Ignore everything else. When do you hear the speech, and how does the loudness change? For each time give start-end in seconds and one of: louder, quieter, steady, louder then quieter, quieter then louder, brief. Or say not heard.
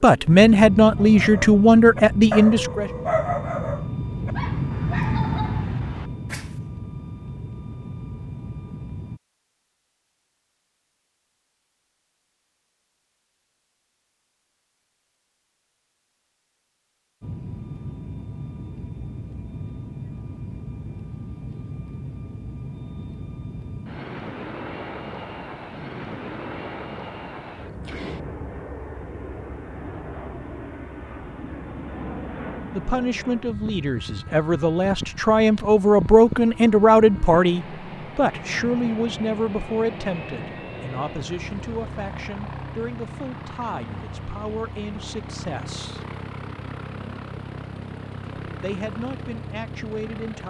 0.0-2.9 brief
32.7-46.0 louder then quieter
48.5-50.4 brief.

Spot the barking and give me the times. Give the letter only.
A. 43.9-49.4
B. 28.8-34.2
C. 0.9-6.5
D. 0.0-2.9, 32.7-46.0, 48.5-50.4
C.